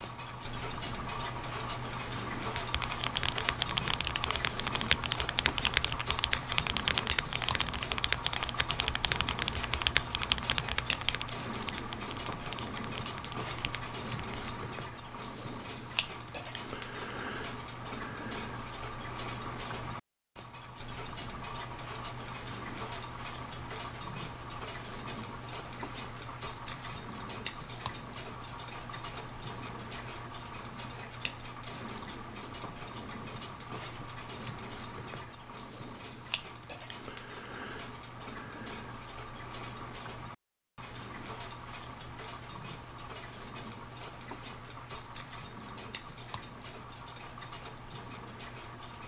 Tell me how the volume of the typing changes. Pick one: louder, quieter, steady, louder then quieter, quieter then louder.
quieter.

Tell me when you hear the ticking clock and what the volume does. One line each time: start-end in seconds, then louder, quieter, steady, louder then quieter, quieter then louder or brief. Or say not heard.
0.0-49.0 quieter.